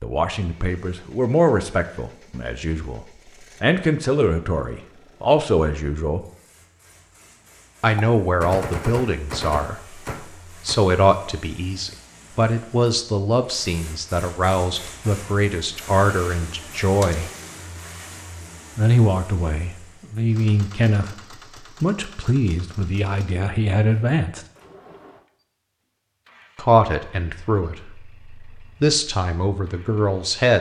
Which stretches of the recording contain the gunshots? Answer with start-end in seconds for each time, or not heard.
8.0-10.8, 17.0-17.6.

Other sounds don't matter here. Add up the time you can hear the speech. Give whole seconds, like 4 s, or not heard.
25 s.